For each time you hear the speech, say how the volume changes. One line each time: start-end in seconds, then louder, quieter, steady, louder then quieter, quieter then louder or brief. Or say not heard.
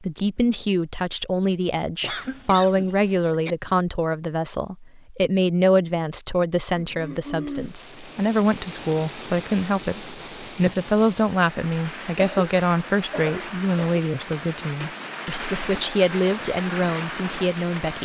0.0-18.0 steady.